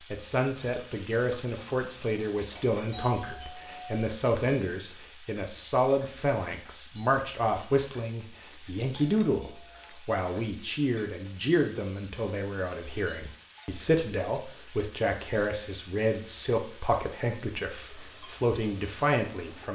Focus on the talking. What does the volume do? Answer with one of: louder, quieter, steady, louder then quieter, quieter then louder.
steady.